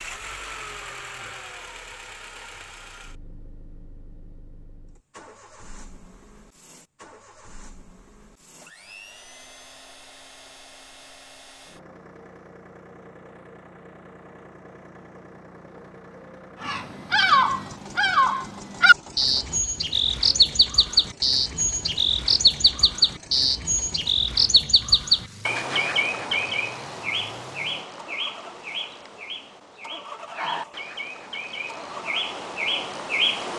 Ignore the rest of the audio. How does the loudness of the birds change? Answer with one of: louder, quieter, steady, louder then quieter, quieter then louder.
quieter.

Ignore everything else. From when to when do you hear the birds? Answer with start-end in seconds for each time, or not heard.
16.6-33.5.